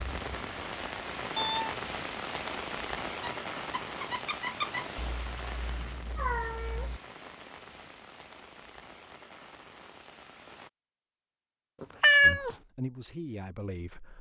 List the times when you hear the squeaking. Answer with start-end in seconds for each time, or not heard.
3.2-5.2.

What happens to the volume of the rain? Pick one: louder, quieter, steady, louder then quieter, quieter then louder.
quieter.